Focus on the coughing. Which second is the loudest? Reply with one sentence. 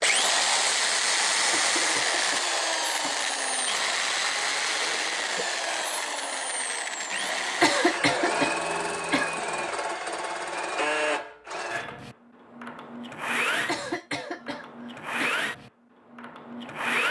The volume of the coughing peaks at 8 seconds.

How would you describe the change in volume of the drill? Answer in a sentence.
The loudness of the drill goes down.